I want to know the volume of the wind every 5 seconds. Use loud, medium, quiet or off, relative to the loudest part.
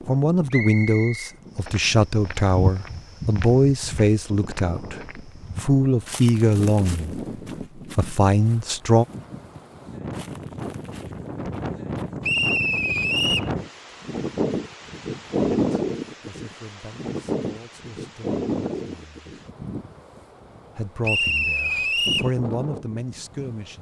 quiet, medium, loud, loud, medium.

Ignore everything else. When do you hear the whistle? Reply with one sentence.
The whistle can be heard from 0.5 to 1.3 s, from 12.2 to 13.5 s and from 21.0 to 22.3 s.